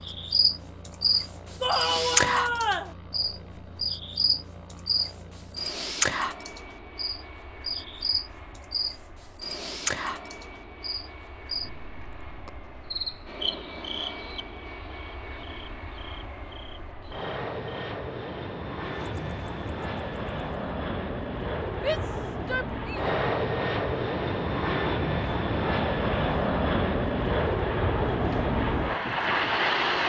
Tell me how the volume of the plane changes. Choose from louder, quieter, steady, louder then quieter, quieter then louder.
louder.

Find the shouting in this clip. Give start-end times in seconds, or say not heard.
1.6-3.0, 21.8-23.1.